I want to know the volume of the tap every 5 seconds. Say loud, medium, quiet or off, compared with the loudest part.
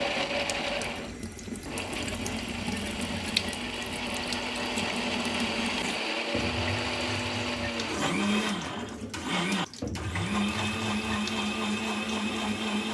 loud, loud, medium.